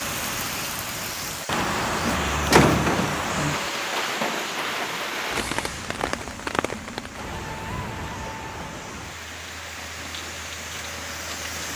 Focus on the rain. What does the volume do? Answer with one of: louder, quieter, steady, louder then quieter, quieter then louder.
quieter.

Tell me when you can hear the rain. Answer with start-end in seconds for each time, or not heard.
0.0-11.7.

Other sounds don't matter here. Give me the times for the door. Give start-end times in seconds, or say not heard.
2.0-3.1.